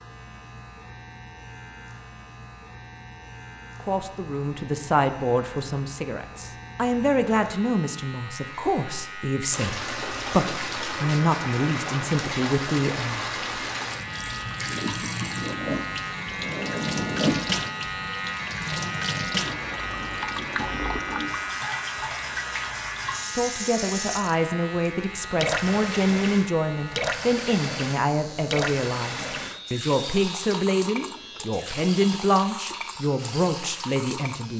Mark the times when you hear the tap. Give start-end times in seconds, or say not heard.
9.5-34.5.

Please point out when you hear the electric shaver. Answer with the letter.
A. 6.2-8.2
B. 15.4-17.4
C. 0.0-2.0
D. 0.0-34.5
D.